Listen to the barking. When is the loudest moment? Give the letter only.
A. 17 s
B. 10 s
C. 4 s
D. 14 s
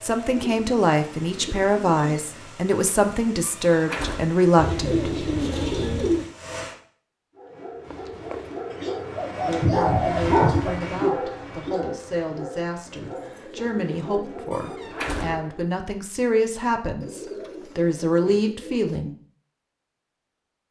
B.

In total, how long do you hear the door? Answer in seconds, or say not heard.
3 s.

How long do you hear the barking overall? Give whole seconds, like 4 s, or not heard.
8 s.